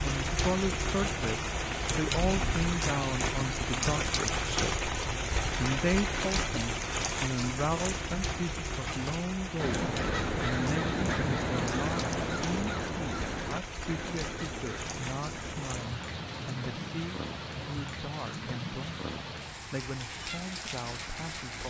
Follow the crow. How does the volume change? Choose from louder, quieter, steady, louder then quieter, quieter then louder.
quieter.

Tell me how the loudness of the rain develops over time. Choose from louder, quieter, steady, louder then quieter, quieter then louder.
quieter.